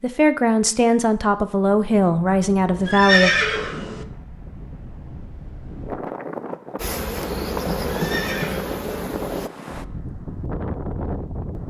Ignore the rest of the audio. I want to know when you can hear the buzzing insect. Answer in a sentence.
The buzzing insect can be heard from 6.8 to 9.5 s.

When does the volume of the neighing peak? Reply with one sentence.
The volume of the neighing peaks at 3 seconds.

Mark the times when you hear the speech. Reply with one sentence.
You can hear the speech from 0.0 to 3.4 s.